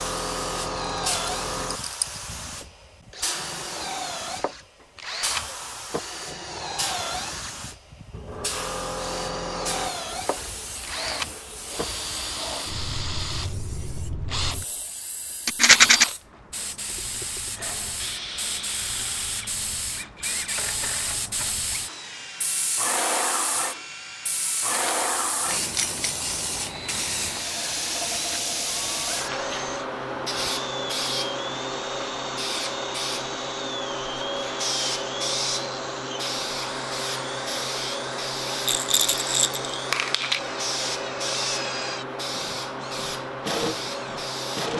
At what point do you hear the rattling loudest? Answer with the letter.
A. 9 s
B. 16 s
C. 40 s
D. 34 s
B.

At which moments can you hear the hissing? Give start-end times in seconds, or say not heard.
0.0-44.7.